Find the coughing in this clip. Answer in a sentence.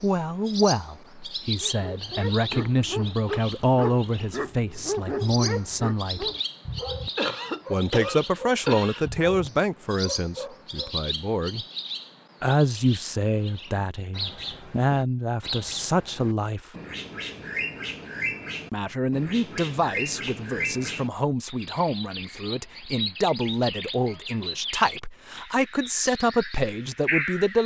You can hear the coughing from 7.2 to 9.1 s.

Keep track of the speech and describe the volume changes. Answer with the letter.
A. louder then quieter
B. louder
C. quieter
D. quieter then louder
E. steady
E.